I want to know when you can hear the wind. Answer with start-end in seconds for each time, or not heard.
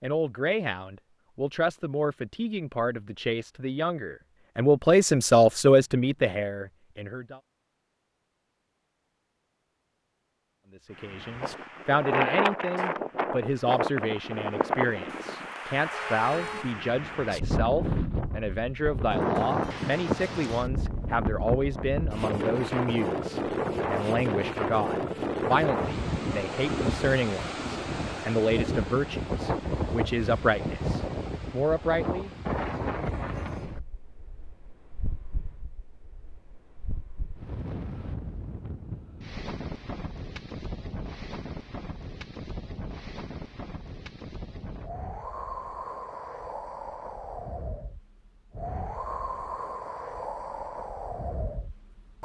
10.9-52.2.